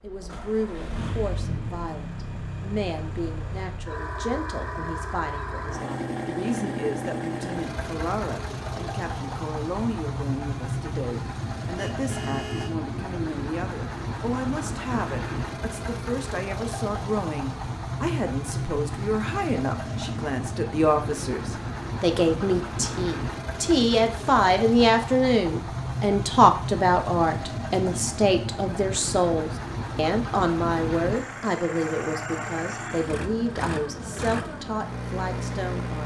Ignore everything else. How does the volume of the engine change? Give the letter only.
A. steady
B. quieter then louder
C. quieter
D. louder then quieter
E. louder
A.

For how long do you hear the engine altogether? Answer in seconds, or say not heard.
36 s.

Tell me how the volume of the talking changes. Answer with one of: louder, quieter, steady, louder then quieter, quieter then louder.
louder then quieter.